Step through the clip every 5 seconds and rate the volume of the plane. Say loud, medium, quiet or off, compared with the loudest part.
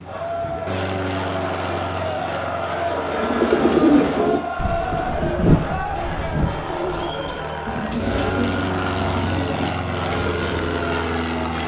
medium, loud, loud.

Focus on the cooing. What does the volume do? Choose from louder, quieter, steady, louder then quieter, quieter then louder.
quieter.